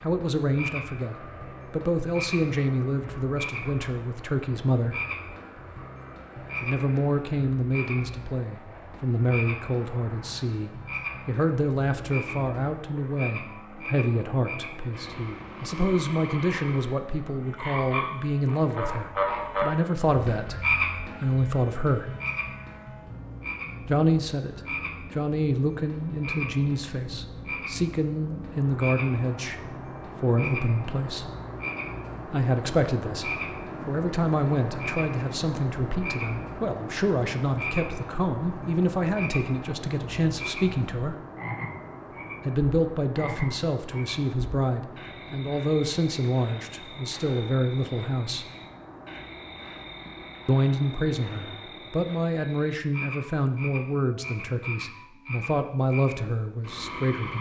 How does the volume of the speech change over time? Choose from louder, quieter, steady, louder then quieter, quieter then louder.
steady.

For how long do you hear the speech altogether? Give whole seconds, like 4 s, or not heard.
50 s.